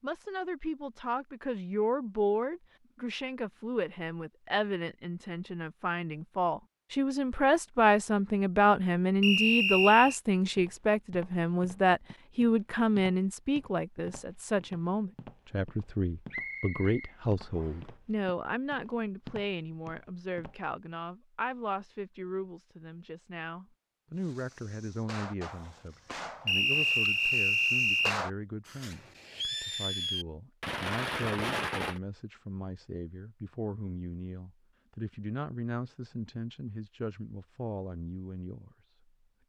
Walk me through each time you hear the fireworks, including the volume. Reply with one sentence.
You can hear the fireworks from 24.1 to 32.0 s, getting louder.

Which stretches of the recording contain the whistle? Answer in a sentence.
You can hear the whistle from 9.2 to 10.2 s, from 16.3 to 17.9 s and from 26.4 to 28.1 s.